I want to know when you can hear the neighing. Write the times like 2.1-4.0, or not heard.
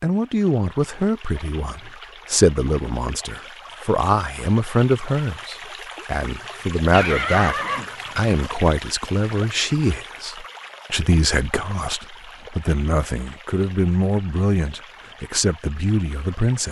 6.9-8.3.